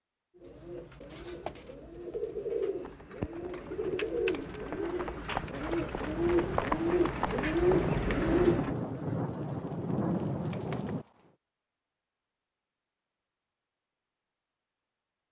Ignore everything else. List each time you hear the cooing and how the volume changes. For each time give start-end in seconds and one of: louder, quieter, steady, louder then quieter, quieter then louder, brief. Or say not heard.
0.3-8.8 louder.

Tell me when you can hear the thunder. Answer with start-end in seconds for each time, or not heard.
7.7-11.1.